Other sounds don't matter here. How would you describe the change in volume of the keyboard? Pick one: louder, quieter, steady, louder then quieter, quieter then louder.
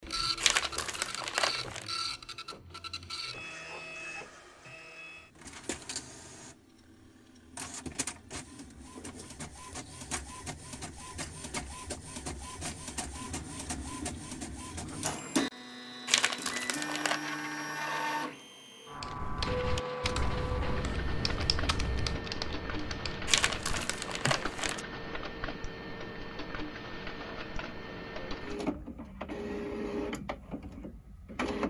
quieter.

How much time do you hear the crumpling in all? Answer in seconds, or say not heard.
4 s.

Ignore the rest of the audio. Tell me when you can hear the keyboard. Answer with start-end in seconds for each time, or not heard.
19.0-24.5.